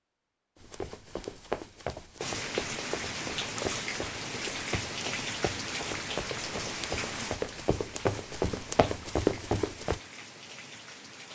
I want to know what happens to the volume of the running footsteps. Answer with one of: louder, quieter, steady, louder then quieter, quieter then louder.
quieter then louder.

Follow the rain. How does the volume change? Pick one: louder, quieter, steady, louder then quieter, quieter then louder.
quieter.